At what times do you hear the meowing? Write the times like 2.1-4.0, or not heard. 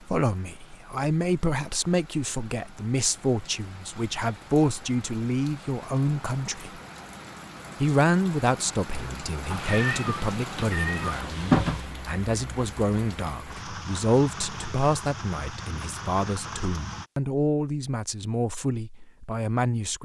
9.5-11.9.